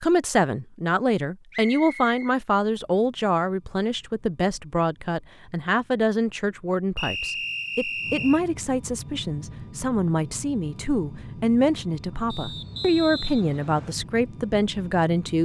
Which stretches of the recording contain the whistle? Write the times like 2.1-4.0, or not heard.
1.5-2.4, 7.0-8.4, 12.3-13.9.